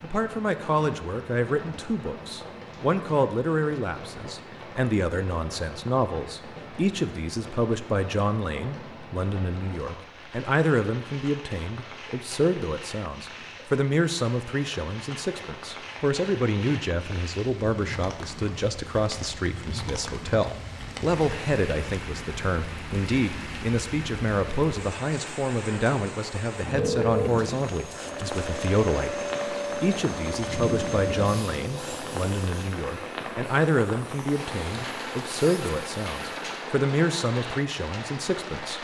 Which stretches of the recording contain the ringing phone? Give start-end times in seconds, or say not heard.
26.8-27.3.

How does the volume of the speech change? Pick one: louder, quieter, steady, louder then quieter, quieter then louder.
steady.